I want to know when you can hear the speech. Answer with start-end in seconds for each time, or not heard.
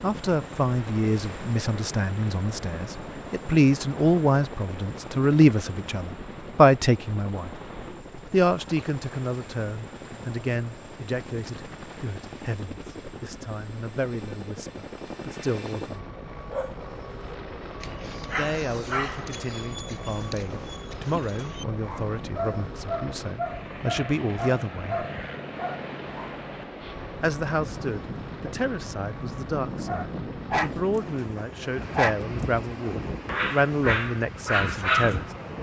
0.0-7.5, 8.3-16.0, 18.4-25.1, 27.2-35.2.